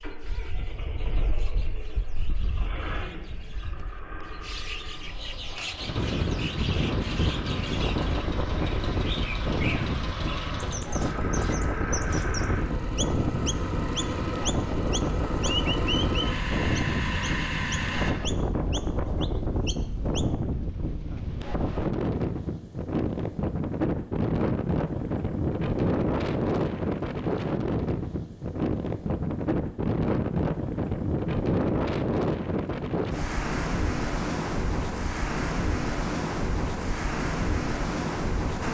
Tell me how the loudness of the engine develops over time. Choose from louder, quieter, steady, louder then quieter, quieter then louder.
louder.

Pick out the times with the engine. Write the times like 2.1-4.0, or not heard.
0.0-18.1.